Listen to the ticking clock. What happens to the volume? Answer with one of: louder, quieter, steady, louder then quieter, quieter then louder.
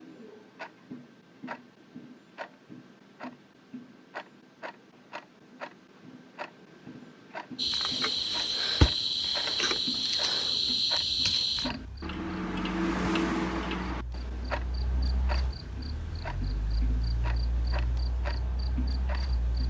louder then quieter.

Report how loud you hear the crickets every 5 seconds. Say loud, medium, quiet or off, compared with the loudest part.
off, loud, loud, quiet.